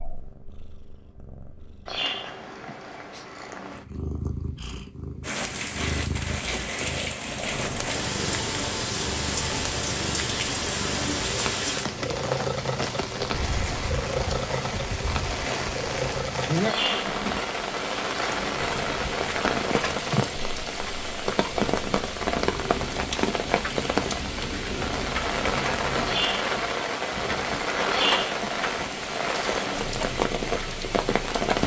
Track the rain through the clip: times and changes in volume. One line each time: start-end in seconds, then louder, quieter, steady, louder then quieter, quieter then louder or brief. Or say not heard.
5.2-31.6 steady.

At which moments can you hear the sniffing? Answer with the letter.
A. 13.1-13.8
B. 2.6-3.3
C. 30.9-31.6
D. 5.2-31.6
B.